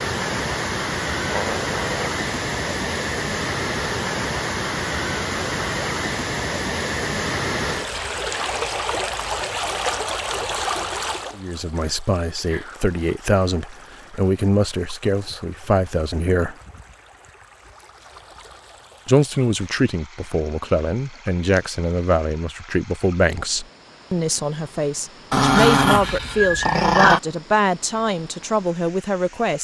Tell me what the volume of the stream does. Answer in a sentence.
The volume of the stream goes down.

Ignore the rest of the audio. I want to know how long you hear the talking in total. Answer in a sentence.
The talking can be heard for 16 seconds in total.